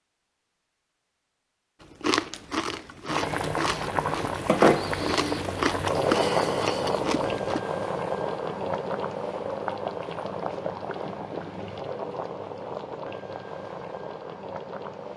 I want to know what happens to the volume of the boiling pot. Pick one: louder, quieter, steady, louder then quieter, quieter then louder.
quieter.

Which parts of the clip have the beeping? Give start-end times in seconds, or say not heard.
not heard.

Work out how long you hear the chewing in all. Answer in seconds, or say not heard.
6 s.